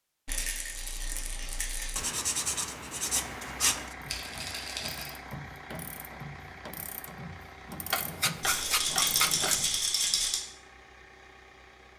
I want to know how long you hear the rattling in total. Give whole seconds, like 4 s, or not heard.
5 s.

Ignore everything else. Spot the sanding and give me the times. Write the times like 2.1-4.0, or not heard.
1.9-4.0, 7.9-9.8.